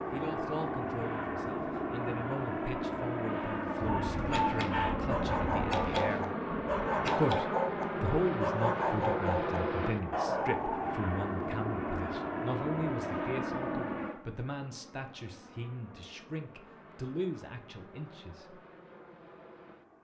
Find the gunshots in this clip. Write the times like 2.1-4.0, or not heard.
3.8-7.4.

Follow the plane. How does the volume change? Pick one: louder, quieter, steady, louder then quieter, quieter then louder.
quieter.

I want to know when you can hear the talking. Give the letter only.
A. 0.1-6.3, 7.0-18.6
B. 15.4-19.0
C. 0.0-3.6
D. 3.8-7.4
A.